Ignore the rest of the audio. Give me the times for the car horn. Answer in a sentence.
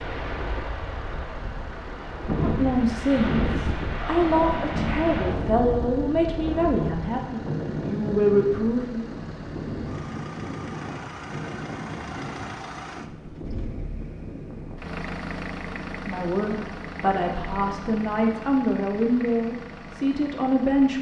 You can't hear the car horn here.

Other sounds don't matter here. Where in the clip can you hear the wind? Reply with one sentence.
You can hear the wind from 0.0 to 14.8 s.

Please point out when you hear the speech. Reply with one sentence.
The speech can be heard from 2.4 to 9.1 s and from 16.1 to 20.9 s.